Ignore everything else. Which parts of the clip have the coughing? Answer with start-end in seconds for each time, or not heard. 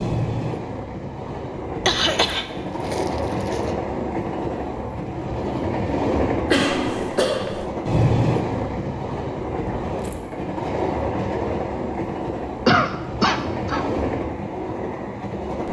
1.9-3.7, 6.5-7.7, 12.7-13.8.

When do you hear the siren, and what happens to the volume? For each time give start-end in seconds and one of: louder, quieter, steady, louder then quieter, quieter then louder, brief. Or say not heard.
not heard.